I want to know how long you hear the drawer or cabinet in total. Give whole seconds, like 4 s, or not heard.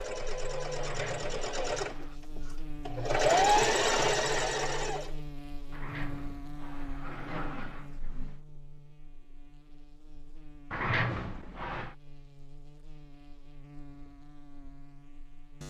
5 s.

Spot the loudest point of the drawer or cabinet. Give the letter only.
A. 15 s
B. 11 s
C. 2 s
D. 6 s
B.